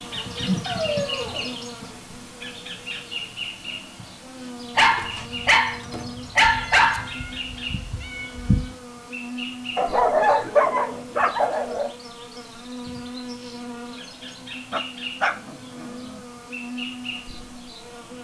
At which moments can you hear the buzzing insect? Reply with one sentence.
You can hear the buzzing insect from 0.0 to 18.1 s.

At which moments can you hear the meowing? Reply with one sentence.
You can hear the meowing from 6.4 to 8.8 s.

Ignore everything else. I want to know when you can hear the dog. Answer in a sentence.
You can hear the dog from 0.7 to 1.6 s, from 4.8 to 7.1 s, from 9.8 to 11.9 s and from 14.7 to 15.9 s.